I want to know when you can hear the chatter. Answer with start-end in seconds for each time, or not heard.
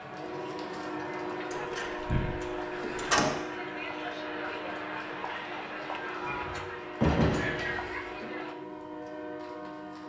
0.0-8.6.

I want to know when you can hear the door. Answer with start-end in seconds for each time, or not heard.
1.5-3.3, 6.2-8.0.